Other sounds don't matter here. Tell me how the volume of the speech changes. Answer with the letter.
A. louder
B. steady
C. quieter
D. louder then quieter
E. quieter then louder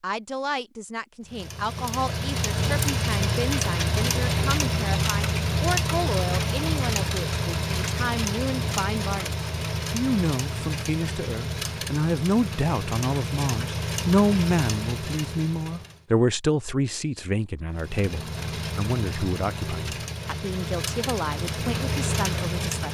D.